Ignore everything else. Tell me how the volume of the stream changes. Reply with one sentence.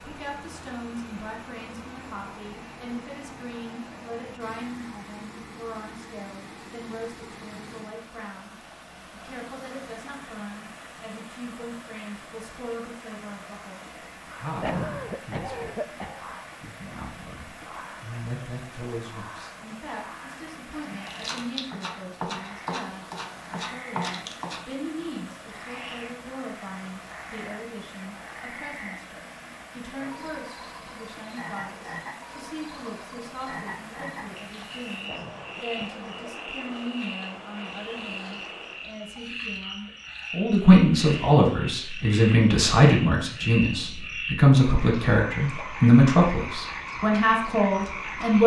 The loudness of the stream stays about the same.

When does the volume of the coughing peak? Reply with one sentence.
The volume of the coughing peaks at 15 seconds.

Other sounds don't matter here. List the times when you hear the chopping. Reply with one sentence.
The chopping can be heard from 20.9 to 24.6 s.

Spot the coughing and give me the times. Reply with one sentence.
You can hear the coughing from 14.6 to 16.3 s and from 35.0 to 36.3 s.